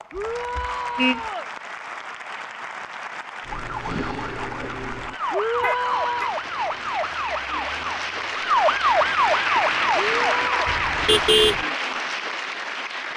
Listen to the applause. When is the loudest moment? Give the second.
10 s.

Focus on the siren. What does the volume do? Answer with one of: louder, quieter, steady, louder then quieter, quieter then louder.
louder.